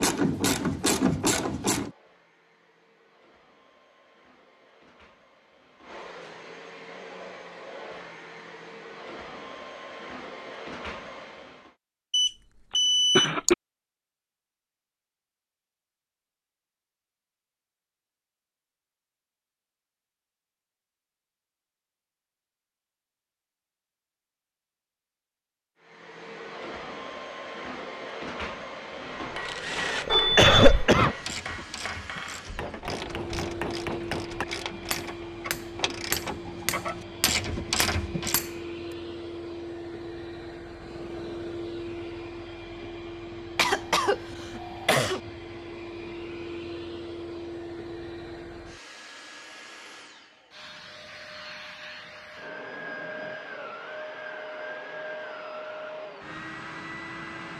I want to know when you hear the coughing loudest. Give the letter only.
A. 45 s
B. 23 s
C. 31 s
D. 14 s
C.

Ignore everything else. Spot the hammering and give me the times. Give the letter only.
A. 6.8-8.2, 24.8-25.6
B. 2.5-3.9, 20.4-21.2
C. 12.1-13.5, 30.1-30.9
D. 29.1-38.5
D.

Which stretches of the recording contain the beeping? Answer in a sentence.
The beeping can be heard from 12.1 to 13.5 s and from 30.1 to 30.9 s.